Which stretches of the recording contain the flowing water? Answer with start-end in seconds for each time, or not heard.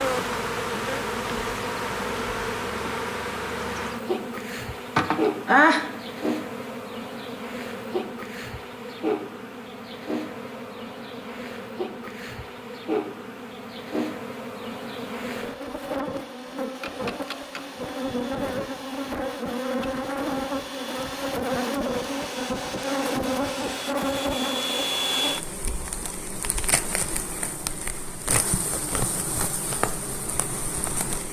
not heard.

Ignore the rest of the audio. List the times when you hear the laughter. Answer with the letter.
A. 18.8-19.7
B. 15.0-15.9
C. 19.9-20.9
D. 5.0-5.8
D.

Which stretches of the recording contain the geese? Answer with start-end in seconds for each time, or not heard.
not heard.